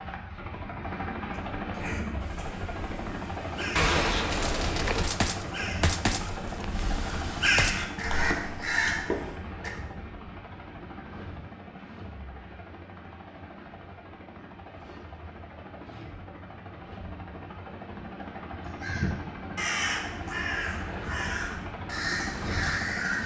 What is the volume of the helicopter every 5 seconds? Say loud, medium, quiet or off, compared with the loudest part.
loud, loud, medium, medium, loud.